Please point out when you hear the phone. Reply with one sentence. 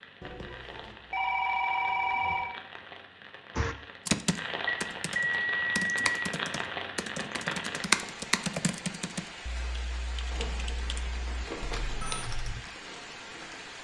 The phone can be heard from 0.2 to 2.5 s, from 4.7 to 6.2 s and from 10.3 to 12.2 s.